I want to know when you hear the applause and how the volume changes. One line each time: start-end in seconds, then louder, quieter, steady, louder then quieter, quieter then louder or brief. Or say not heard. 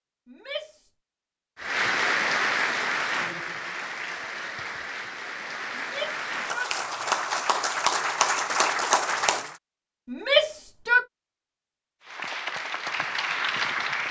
1.6-9.6 quieter then louder
12.1-14.0 brief.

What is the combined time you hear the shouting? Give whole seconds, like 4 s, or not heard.
3 s.